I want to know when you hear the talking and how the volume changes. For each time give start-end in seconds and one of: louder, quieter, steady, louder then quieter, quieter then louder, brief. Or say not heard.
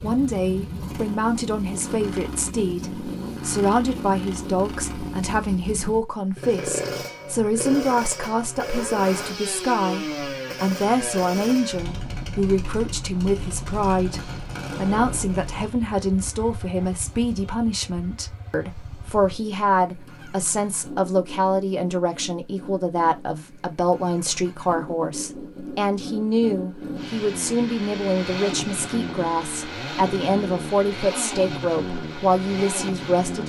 0.0-33.4 steady.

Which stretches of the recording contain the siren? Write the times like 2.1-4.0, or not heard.
not heard.